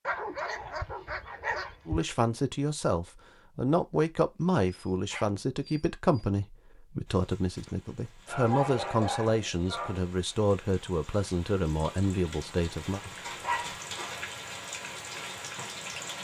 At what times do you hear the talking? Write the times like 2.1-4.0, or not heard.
1.9-13.0.